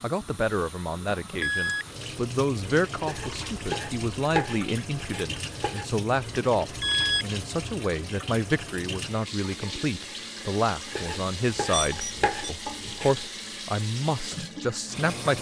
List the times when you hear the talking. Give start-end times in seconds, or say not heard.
0.0-15.3.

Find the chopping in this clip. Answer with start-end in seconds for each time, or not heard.
3.0-5.8, 10.9-13.3.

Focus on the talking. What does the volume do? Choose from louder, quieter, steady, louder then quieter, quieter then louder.
steady.